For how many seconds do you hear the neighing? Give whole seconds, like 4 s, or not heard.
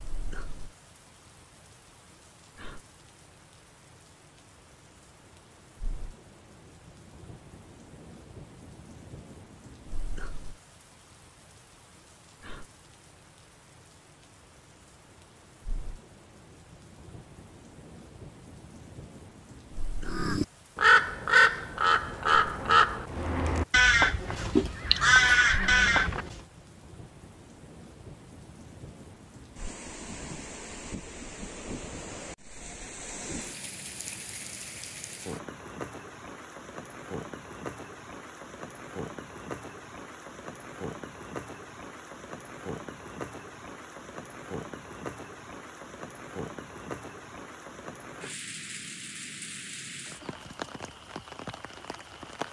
2 s.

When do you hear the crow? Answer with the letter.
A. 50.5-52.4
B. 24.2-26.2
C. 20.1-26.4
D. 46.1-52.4
C.